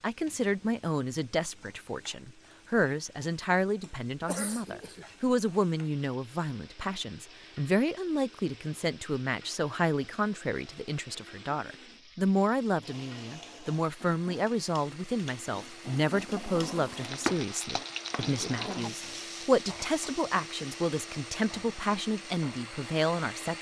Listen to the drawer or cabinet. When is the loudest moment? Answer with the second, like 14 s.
17 s.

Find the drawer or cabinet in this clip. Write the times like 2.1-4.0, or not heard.
16.1-18.9.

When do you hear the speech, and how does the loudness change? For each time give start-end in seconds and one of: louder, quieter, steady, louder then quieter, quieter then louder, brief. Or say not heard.
0.0-23.5 steady.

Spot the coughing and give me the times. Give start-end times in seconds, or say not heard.
4.2-5.0.